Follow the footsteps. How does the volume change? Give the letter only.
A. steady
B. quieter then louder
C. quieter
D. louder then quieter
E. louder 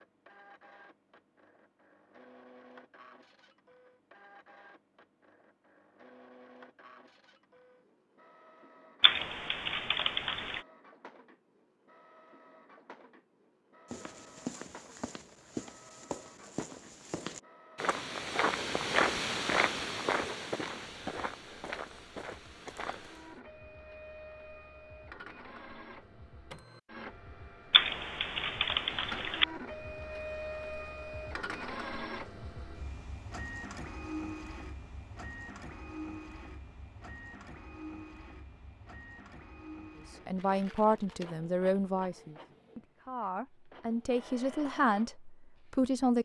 D.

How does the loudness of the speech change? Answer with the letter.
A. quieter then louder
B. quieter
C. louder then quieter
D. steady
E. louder
A.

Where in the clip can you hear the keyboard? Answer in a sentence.
The keyboard can be heard from 9.0 to 10.6 s and from 27.7 to 29.4 s.